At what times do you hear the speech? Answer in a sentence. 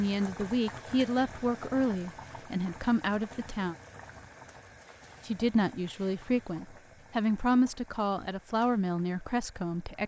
The speech can be heard from 0.0 to 3.8 s and from 5.2 to 10.0 s.